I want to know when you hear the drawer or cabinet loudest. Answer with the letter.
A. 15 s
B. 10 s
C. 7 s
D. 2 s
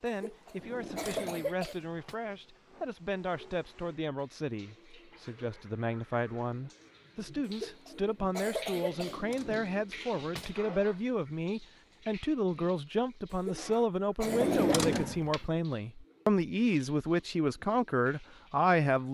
A.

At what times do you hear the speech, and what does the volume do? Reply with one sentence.
The speech can be heard from 0.0 to 19.0 s, getting louder.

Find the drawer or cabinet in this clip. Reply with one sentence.
You can hear the drawer or cabinet from 0.6 to 2.1 s, from 8.8 to 10.6 s and from 14.2 to 15.4 s.